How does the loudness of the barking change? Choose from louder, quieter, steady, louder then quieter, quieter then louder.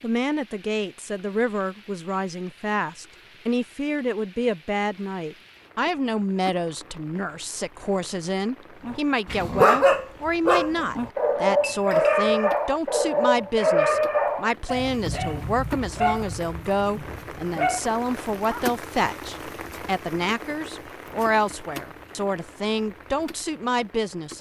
quieter.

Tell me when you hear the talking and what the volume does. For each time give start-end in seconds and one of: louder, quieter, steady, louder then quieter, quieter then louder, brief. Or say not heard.
0.0-24.3 steady.